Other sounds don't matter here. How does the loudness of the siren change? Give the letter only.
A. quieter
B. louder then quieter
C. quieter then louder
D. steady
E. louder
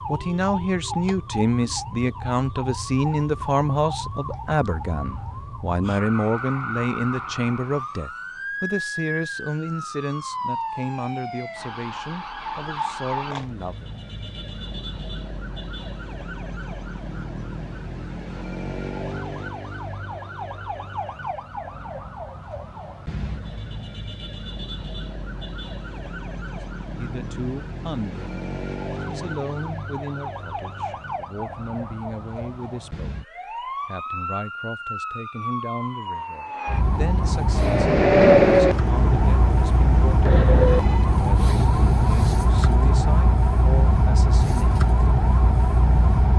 E.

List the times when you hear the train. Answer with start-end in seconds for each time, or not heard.
37.5-41.1.